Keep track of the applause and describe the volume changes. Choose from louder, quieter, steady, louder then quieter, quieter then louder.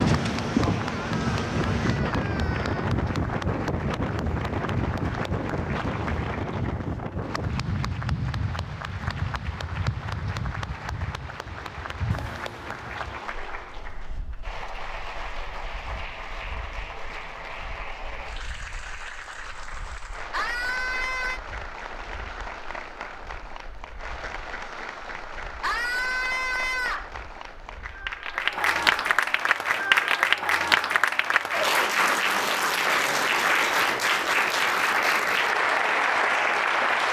louder.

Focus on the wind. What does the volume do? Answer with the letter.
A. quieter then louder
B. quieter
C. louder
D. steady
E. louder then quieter
B.